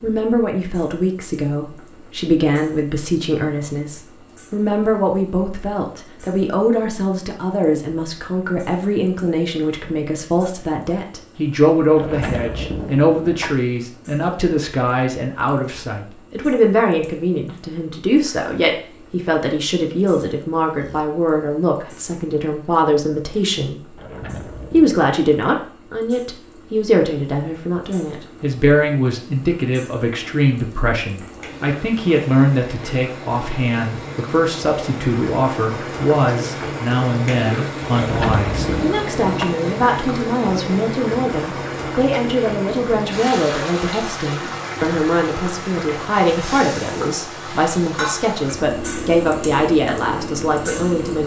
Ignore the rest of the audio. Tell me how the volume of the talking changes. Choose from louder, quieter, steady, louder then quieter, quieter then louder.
steady.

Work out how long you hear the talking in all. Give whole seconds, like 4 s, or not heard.
51 s.